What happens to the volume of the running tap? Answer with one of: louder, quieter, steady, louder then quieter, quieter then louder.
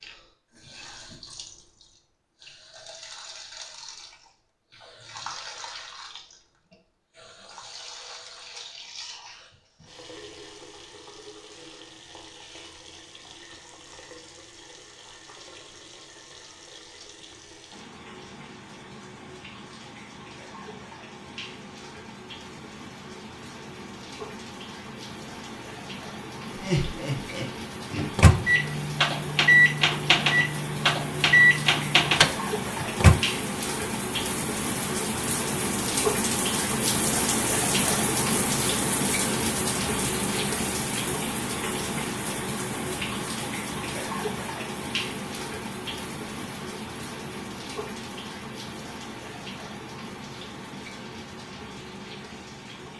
louder then quieter.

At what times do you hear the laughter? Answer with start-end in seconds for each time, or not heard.
26.5-27.5.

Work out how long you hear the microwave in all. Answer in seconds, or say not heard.
5 s.